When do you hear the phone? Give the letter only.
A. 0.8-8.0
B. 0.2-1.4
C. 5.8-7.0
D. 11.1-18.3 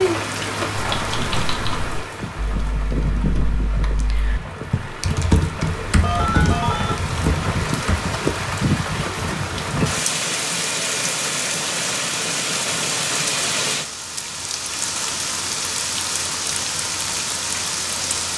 C.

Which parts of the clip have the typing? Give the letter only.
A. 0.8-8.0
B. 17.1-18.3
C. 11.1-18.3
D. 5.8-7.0
A.